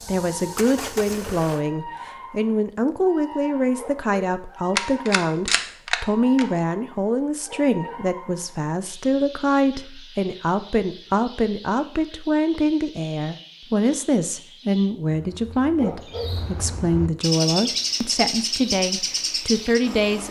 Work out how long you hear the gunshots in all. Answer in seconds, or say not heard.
2 s.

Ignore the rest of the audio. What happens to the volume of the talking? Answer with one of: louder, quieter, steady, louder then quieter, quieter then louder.
steady.